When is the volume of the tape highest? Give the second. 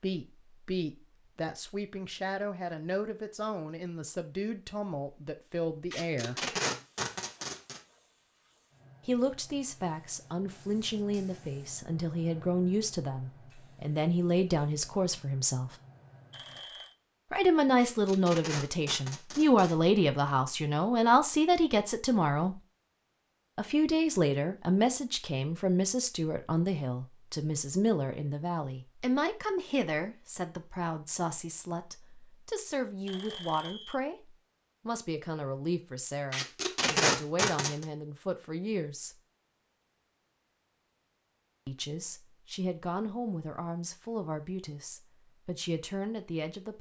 37 s.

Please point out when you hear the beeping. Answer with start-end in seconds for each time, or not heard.
16.3-16.9, 33.0-34.0.